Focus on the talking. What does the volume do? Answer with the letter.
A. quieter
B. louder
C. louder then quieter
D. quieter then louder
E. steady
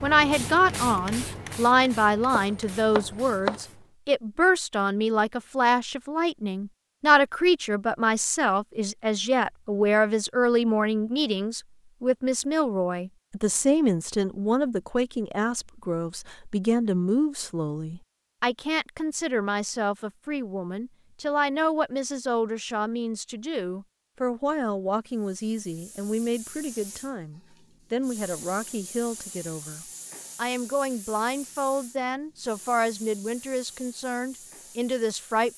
A.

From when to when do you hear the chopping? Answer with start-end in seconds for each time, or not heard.
2.3-3.6.